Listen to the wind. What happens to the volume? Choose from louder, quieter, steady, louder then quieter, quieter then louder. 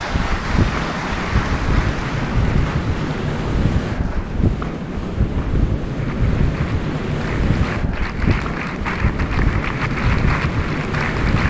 steady.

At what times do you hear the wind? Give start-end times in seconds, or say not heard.
0.0-11.4.